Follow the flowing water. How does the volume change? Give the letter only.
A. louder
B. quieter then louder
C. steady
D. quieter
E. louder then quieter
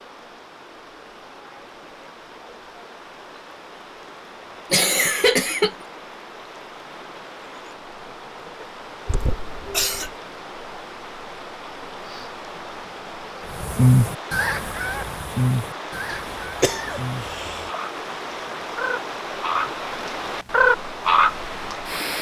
A.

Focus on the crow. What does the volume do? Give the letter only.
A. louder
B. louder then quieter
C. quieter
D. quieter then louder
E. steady
D.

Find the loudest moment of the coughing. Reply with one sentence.
The volume of the coughing peaks at 5 seconds.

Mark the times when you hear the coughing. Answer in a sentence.
The coughing can be heard from 4.7 to 5.8 s, from 9.1 to 10.2 s and from 16.1 to 17.7 s.